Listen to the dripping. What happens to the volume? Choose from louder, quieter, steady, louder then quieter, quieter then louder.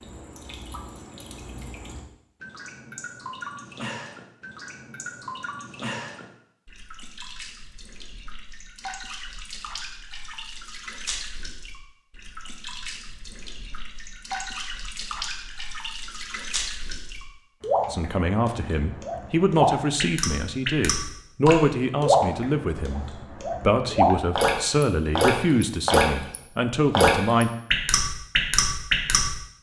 louder.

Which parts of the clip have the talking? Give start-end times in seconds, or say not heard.
17.9-27.5.